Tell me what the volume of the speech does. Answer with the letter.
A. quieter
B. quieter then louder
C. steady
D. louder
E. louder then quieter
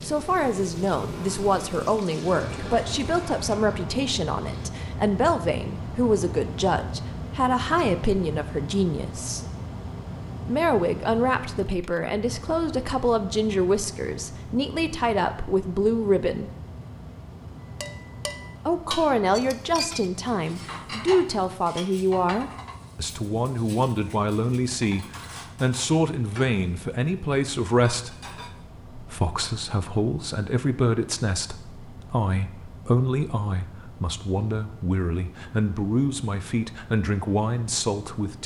C.